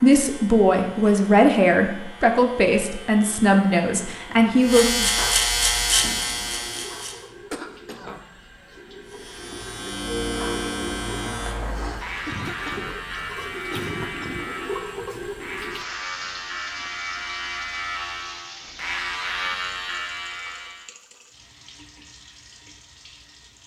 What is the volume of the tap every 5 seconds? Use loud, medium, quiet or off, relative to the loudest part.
off, medium, loud, loud, quiet.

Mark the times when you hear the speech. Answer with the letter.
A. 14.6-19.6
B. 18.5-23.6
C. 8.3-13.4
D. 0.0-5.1
D.